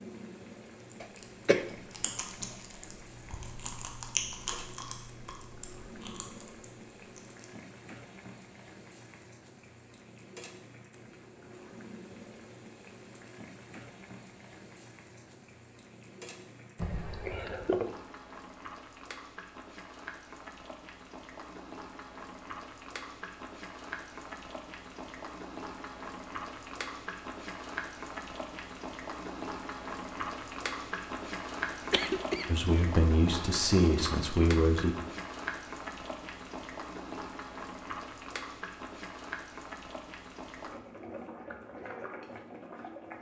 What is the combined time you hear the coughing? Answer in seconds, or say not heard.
2 s.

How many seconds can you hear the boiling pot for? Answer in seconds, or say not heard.
43 s.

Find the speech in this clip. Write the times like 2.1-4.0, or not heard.
32.5-35.0.